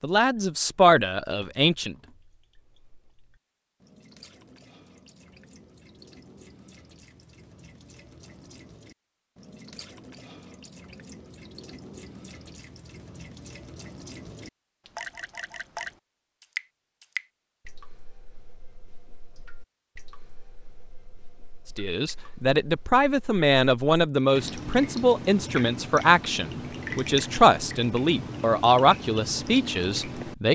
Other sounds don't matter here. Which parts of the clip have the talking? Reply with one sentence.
The talking can be heard from 0.0 to 1.9 s and from 21.8 to 30.4 s.